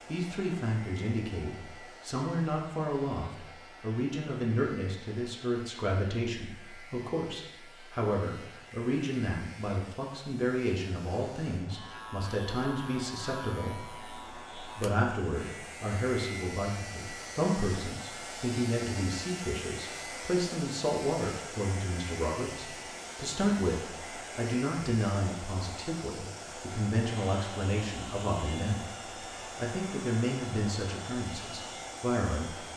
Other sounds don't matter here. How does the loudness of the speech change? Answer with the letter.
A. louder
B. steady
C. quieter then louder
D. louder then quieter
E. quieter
B.